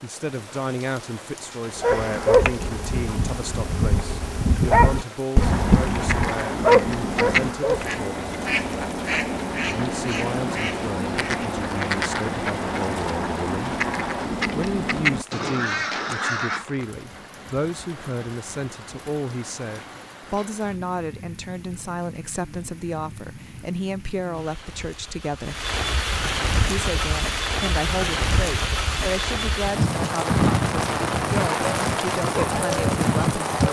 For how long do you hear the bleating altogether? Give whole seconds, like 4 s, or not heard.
not heard.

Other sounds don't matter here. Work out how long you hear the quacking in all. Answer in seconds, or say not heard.
11 s.